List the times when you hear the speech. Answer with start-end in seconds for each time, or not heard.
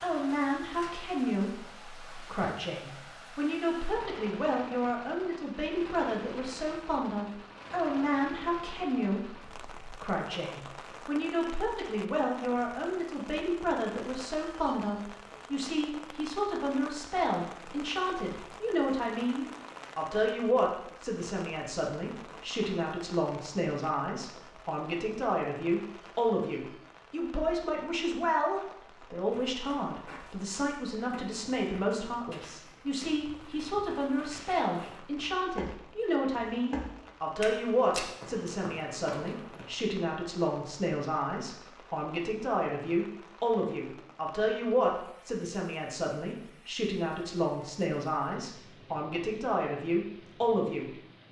0.0-51.0.